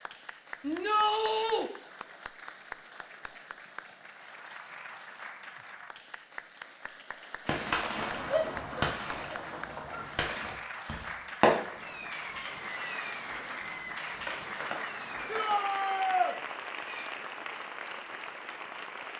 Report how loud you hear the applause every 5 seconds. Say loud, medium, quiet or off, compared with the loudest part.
medium, medium, loud, loud.